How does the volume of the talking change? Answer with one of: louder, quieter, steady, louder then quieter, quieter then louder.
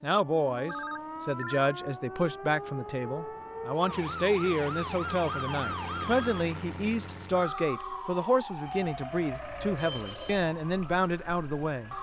steady.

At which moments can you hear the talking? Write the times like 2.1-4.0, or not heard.
0.0-11.9.